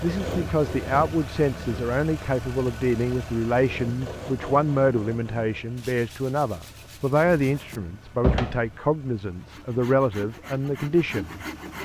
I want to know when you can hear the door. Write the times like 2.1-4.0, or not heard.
7.2-8.7.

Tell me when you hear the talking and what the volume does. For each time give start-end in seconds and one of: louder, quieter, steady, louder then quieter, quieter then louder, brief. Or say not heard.
0.0-11.8 steady.